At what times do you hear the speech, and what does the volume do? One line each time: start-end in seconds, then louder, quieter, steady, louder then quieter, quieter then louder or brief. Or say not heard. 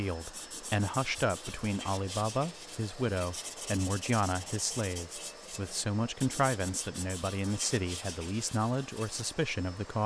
0.0-10.0 steady.